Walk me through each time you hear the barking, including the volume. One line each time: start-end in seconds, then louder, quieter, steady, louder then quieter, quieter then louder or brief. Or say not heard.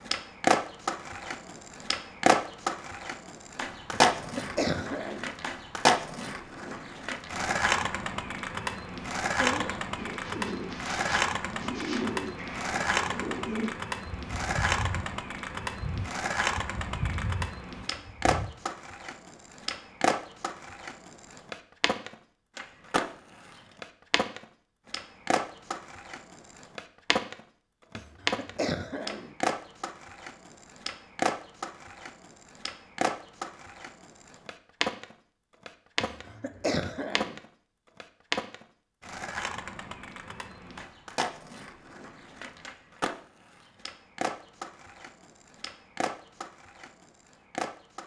not heard.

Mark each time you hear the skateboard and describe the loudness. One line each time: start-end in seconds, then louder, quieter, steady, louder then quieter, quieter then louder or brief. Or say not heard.
0.1-48.0 quieter.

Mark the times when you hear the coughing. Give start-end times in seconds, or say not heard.
3.9-5.3, 27.9-29.4, 36.0-37.4.